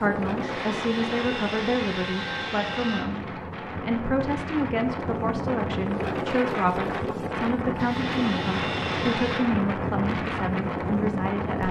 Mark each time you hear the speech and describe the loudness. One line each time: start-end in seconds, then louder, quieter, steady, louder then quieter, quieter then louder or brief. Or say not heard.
0.0-11.6 steady.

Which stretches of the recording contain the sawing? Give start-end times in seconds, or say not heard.
0.4-3.0, 7.8-9.4.